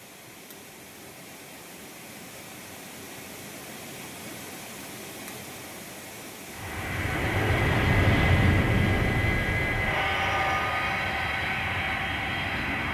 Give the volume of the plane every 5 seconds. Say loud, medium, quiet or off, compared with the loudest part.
off, loud, loud.